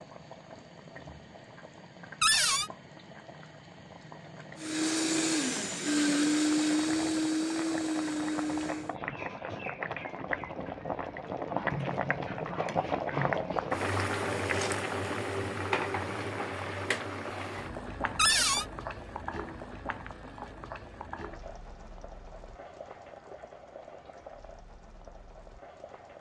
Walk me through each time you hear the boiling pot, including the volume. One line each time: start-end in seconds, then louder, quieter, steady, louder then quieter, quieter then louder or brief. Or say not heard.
0.0-26.1 louder then quieter.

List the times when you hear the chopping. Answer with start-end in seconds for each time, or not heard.
not heard.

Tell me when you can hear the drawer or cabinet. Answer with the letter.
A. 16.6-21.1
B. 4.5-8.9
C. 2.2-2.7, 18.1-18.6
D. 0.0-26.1
C.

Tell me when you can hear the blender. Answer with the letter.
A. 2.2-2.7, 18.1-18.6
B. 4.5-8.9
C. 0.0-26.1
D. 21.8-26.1
B.